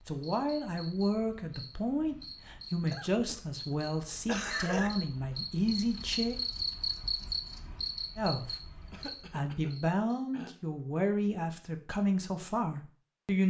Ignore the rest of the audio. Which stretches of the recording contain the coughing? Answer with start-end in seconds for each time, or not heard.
2.9-4.9, 8.9-10.5.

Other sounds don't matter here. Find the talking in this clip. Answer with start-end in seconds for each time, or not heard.
0.1-6.4, 8.2-13.4.